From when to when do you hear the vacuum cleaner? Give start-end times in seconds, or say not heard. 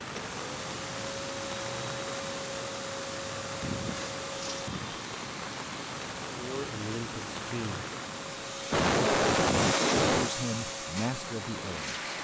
0.2-12.1.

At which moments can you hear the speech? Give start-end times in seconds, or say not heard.
6.3-7.8, 10.2-12.1.